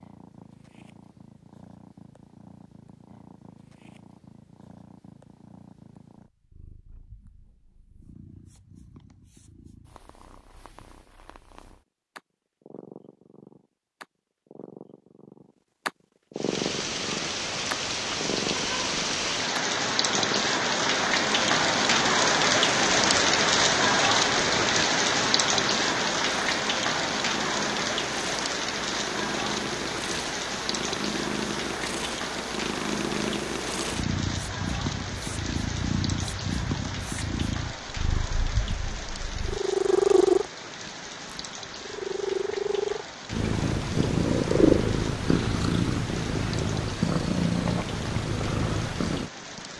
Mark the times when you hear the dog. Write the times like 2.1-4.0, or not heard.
not heard.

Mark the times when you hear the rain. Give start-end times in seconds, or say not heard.
16.4-49.7.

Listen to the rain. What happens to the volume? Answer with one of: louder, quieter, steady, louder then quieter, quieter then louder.
quieter.